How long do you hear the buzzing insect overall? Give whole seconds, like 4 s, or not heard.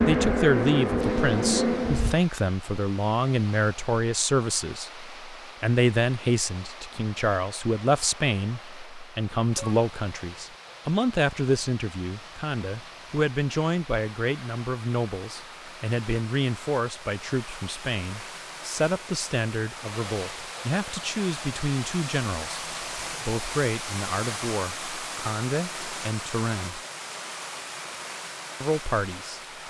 2 s.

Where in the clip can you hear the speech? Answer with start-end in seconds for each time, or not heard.
0.1-26.8, 28.6-29.4.